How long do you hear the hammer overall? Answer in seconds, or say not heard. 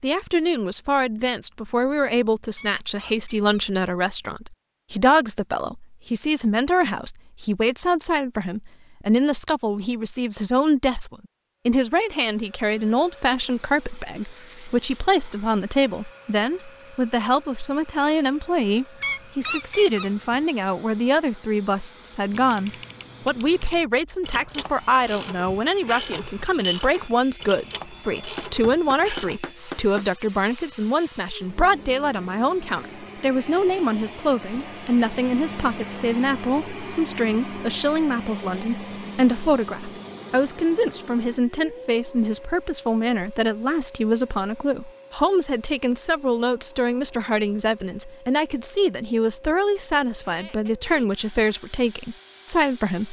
2 s.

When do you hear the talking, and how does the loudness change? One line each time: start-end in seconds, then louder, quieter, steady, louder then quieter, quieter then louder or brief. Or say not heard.
0.0-53.0 steady.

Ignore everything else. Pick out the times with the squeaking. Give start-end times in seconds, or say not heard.
2.5-3.6, 19.0-20.4, 50.2-51.1.